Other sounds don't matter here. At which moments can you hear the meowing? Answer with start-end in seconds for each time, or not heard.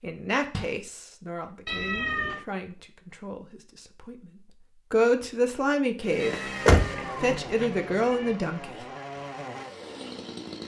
1.6-2.5, 6.2-8.3.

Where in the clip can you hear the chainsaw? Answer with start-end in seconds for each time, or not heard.
6.0-10.6.